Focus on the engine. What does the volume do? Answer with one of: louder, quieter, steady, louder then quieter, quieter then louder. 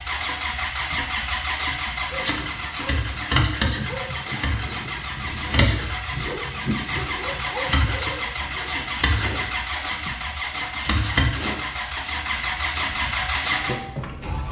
steady.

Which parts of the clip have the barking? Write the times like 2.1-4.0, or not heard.
2.1-9.8.